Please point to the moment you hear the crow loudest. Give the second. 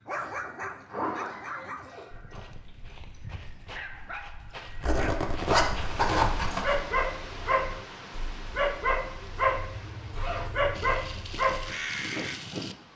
12 s.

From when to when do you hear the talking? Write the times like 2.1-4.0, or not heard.
not heard.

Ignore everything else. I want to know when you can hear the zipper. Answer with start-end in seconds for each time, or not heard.
0.8-2.5, 4.8-6.8, 9.4-11.3.